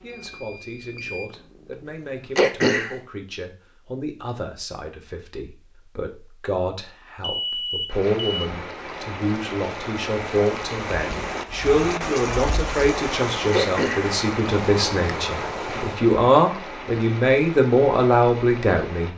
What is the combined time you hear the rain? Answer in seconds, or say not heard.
11 s.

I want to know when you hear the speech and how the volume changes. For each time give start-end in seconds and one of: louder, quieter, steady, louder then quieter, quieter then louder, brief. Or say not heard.
0.0-19.1 louder.